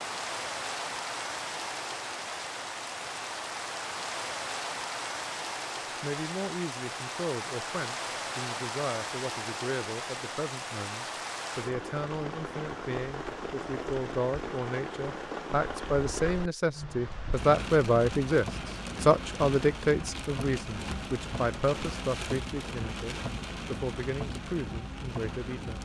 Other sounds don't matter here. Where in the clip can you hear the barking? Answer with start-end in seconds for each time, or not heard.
not heard.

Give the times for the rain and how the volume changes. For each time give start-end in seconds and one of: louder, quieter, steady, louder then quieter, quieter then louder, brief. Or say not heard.
0.0-25.8 steady.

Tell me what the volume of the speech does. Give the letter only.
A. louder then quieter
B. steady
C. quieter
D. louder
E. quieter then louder
A.